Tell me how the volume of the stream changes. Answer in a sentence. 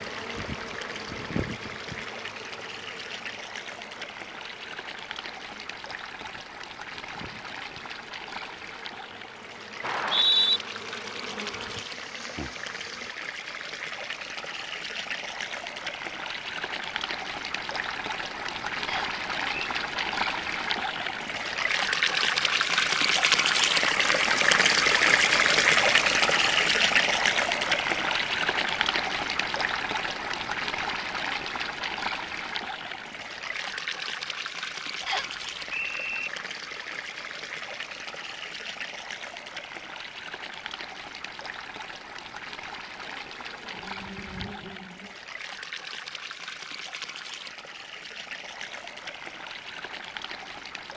The loudness of the stream goes up, then down.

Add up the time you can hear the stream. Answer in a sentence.
The stream can be heard for 51 seconds in total.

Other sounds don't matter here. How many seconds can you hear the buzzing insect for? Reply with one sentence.
You can hear the buzzing insect for 15 seconds altogether.